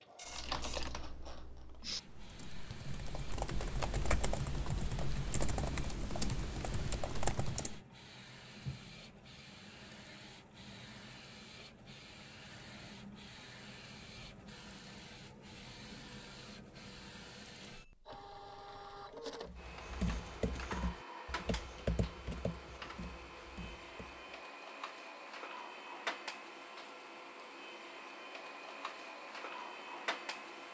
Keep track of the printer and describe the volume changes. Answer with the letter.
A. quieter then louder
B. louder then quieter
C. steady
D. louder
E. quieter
D.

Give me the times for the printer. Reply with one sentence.
You can hear the printer from 0.0 to 30.6 s.